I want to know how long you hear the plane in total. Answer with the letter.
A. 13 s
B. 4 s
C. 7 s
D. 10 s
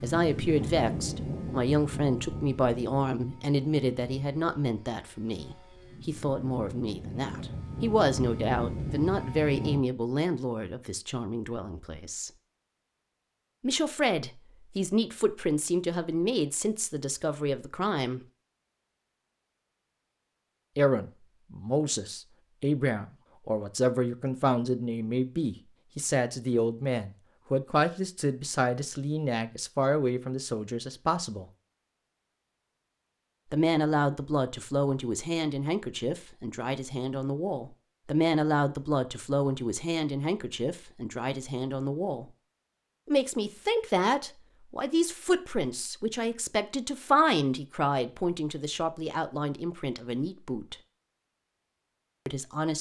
D.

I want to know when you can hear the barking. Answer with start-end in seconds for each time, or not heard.
not heard.